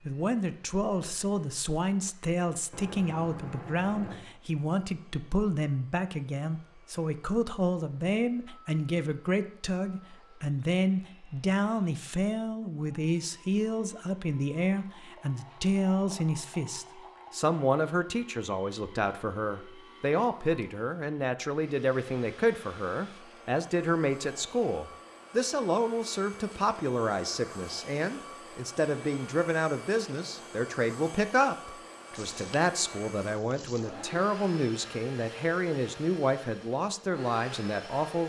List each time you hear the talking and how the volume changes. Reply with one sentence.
You can hear the talking from 0.1 to 38.2 s, at a steady volume.